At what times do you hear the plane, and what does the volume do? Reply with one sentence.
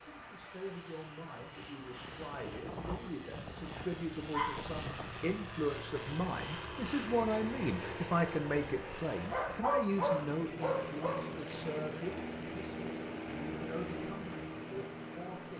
You can hear the plane from 0.0 to 15.5 s, getting louder.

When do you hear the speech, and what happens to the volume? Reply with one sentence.
You can hear the speech from 0.0 to 15.5 s, getting louder then quieter.